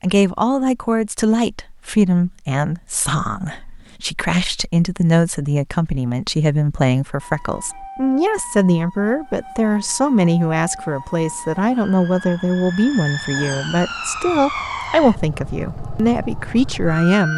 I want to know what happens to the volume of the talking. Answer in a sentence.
The volume of the talking stays about the same.